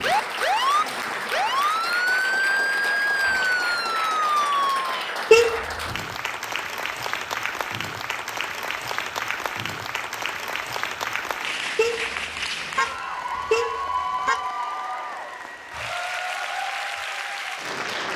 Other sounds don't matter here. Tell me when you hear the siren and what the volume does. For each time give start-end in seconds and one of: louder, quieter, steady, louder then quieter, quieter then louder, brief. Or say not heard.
0.0-5.0 steady.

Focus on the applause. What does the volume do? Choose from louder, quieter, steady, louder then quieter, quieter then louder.
steady.